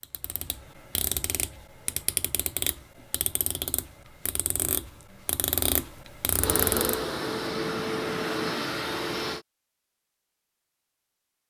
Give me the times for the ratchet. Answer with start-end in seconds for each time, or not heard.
0.0-7.0.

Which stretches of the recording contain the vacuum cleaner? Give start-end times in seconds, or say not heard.
6.3-9.4.